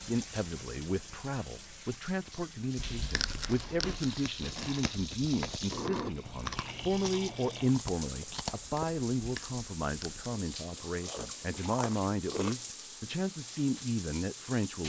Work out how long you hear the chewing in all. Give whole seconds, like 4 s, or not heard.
10 s.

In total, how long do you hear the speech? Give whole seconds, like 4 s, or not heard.
15 s.